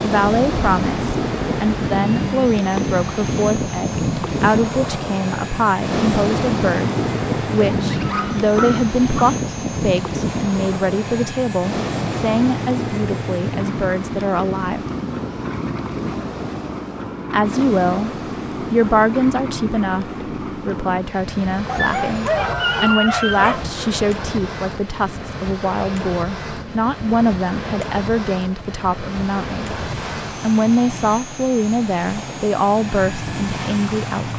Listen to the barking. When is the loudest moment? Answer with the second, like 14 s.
23 s.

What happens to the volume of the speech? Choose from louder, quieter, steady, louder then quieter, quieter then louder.
steady.